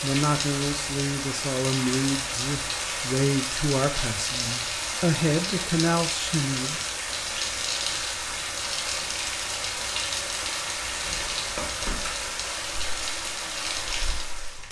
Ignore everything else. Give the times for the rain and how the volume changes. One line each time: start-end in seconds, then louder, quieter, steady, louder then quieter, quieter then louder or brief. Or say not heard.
0.0-14.6 steady.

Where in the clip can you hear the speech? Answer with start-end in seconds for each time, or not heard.
0.0-6.8.